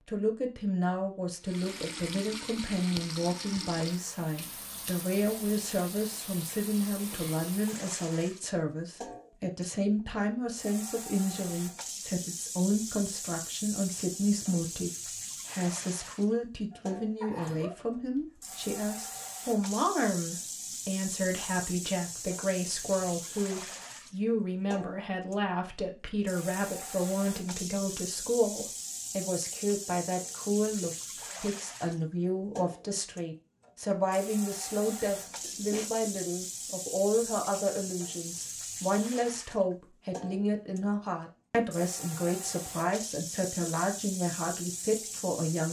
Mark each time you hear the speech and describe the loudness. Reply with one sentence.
You can hear the speech from 0.1 to 45.6 s, at a steady volume.